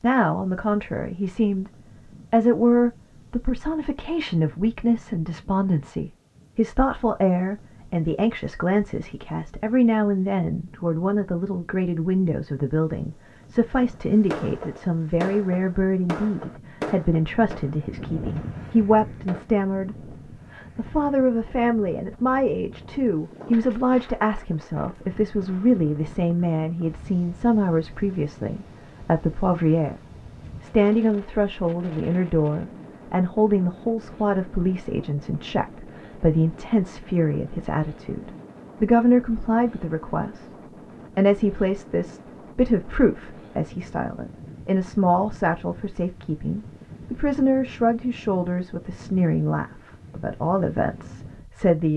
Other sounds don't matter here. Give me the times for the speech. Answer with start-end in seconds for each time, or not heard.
0.0-1.7, 2.3-30.0, 30.6-40.5, 41.1-51.9.